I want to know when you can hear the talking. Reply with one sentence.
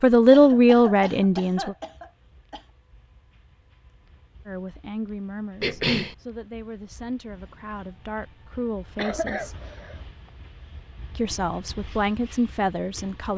You can hear the talking from 0.0 to 1.8 s, from 4.5 to 9.5 s and from 11.2 to 13.3 s.